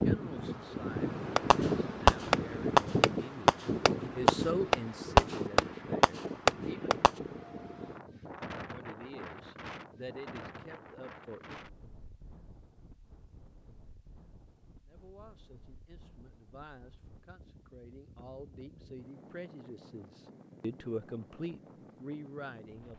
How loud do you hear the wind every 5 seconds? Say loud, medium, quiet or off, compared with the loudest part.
loud, medium, quiet, quiet, quiet.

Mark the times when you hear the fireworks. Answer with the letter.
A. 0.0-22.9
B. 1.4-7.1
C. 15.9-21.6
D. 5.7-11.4
B.